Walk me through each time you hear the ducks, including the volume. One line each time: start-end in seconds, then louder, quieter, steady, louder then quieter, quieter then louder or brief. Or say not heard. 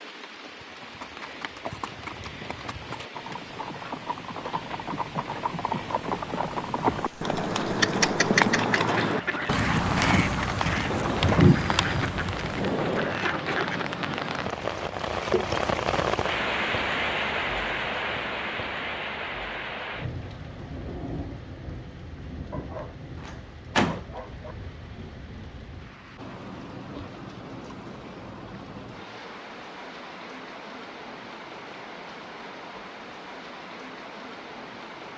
8.8-13.8 steady.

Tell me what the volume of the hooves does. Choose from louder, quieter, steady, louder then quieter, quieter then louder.
louder.